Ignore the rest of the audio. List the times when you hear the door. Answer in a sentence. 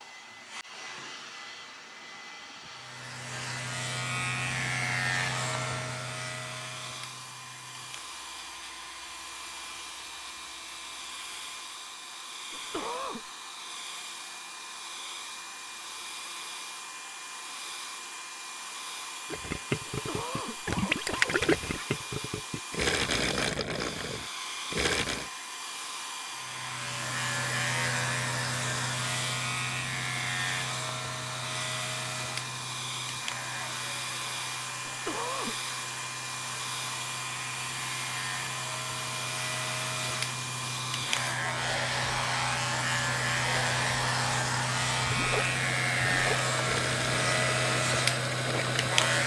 The door can't be heard in this clip.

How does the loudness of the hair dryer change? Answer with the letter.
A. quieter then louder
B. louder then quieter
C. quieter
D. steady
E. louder
E.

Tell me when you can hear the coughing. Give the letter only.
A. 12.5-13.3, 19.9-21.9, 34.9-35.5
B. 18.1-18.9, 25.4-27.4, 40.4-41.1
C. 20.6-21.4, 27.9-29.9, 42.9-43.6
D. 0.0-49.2
A.